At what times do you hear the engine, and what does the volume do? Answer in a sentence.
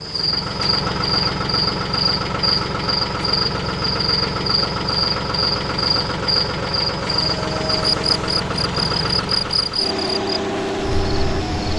You can hear the engine from 0.0 to 11.7 s, at a steady volume.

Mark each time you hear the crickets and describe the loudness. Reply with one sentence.
The crickets can be heard from 0.0 to 11.7 s, at a steady volume.